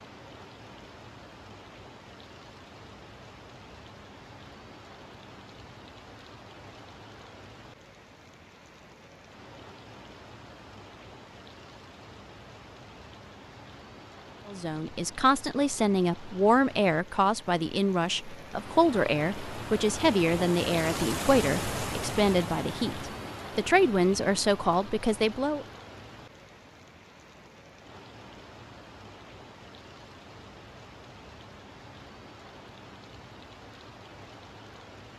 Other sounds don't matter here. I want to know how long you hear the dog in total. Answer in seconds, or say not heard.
not heard.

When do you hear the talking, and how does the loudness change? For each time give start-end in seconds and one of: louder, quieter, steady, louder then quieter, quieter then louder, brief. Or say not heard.
14.4-25.6 steady.